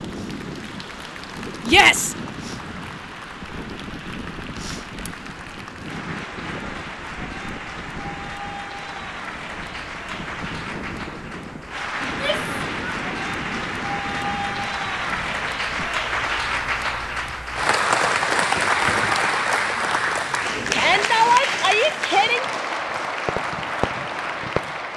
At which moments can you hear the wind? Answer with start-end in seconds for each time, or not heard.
0.0-15.9.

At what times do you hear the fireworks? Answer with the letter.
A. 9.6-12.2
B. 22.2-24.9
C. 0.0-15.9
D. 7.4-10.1
B.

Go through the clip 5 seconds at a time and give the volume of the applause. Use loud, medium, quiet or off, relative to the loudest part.
quiet, quiet, medium, loud, loud.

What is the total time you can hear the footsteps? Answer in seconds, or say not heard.
not heard.